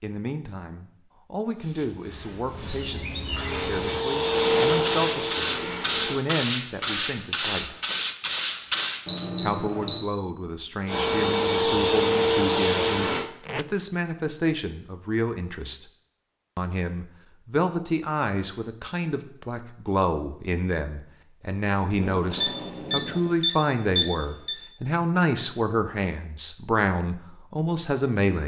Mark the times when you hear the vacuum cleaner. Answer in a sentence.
The vacuum cleaner can be heard from 3.5 to 6.2 s and from 10.8 to 13.3 s.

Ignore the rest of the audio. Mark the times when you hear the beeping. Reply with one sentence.
You can hear the beeping from 9.1 to 10.0 s and from 22.3 to 24.6 s.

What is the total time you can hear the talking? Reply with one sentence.
The talking can be heard for 26 seconds in total.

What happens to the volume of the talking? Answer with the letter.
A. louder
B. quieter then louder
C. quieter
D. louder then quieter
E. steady
A.